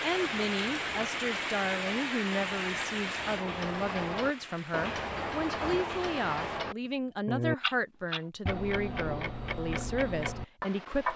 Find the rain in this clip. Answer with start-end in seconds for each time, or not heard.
0.0-6.6.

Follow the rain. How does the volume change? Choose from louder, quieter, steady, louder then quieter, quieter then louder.
quieter.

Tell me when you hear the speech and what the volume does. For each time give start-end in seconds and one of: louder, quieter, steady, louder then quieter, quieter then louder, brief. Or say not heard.
0.0-11.1 steady.